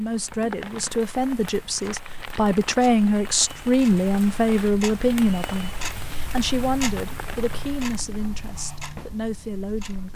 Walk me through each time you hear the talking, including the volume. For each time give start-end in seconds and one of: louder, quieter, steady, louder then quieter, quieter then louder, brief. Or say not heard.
0.0-10.1 louder then quieter.